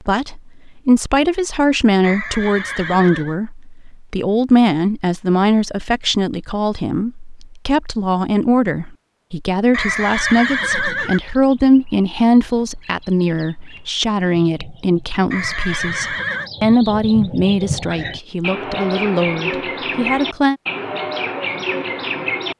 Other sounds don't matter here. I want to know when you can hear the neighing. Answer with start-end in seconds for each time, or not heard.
2.0-3.4, 9.7-11.2, 15.3-16.5.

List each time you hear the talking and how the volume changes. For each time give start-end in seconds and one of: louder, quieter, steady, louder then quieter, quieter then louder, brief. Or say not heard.
0.1-20.6 steady.